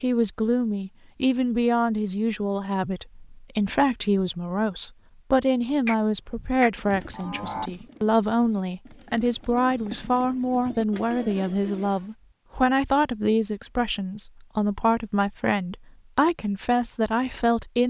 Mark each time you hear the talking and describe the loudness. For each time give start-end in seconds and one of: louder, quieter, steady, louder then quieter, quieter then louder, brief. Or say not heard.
0.0-17.8 steady.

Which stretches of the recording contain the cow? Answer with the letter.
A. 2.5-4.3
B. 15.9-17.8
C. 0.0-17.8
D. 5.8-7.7
D.